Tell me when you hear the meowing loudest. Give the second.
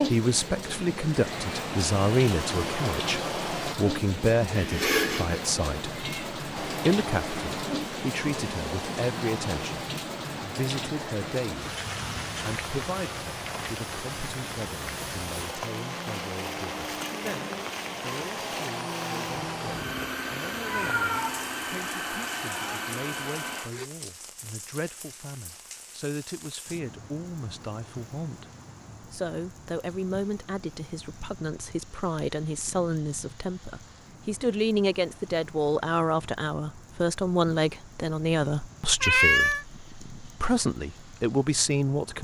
39 s.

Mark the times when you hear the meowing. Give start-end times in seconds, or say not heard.
4.5-6.2, 20.6-21.4, 39.0-39.6.